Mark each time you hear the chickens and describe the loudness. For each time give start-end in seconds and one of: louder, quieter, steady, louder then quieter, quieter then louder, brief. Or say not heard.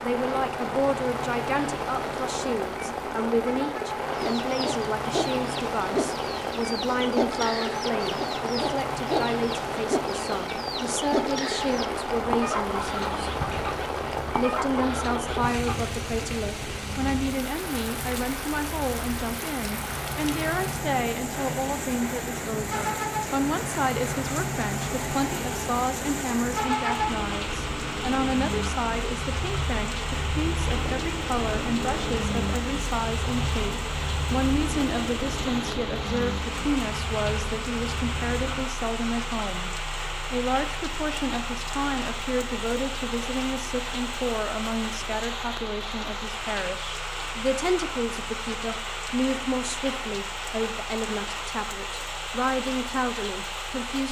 4.1-15.9 steady.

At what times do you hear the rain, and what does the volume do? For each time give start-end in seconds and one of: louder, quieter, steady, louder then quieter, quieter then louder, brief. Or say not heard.
0.0-54.0 steady.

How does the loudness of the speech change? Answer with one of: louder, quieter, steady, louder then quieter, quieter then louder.
steady.